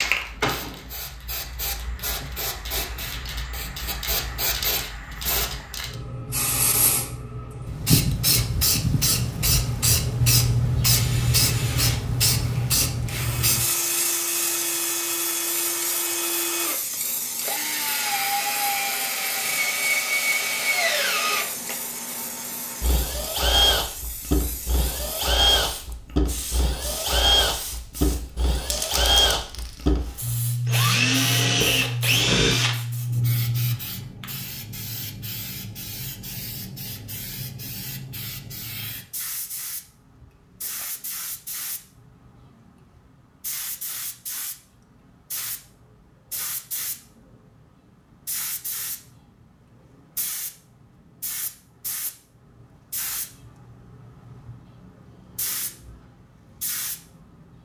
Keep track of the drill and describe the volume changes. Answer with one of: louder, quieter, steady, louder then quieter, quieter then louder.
louder.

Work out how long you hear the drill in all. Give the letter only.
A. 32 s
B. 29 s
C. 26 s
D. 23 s
D.